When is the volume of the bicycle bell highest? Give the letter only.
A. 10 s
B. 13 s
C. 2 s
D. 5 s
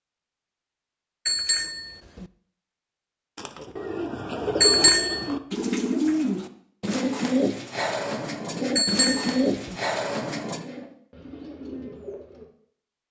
D.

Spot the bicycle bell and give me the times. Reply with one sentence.
The bicycle bell can be heard from 1.2 to 2.2 s, from 4.6 to 5.2 s and from 8.8 to 9.8 s.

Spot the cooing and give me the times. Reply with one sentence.
The cooing can be heard from 3.4 to 12.4 s.